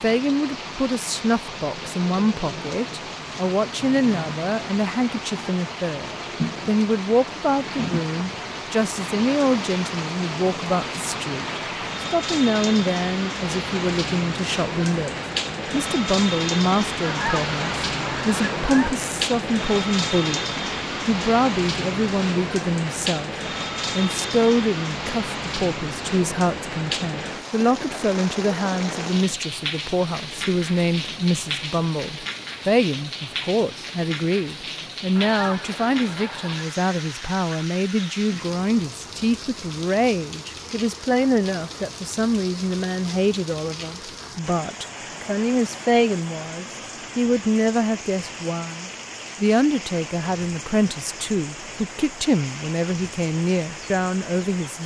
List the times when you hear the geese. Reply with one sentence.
The geese can be heard from 17.0 to 19.0 s and from 35.1 to 36.7 s.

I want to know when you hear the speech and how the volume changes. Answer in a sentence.
You can hear the speech from 0.0 to 20.4 s, at a steady volume; briefly from 21.1 to 23.3 s; and from 23.9 to 54.8 s, at a steady volume.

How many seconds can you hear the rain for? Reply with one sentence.
You can hear the rain for 55 seconds altogether.